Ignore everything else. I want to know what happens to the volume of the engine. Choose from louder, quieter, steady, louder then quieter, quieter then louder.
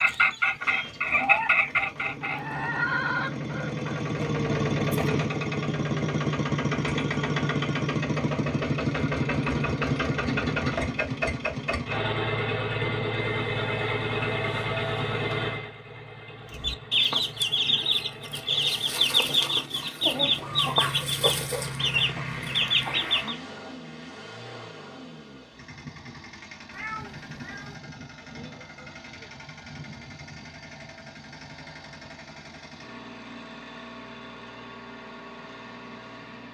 quieter.